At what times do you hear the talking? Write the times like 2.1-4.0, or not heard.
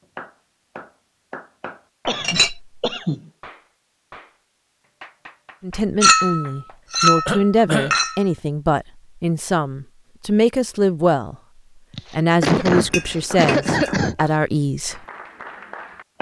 5.6-11.3, 12.1-15.0.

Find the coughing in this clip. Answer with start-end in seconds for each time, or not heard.
2.0-3.3, 7.2-8.0, 11.9-14.2.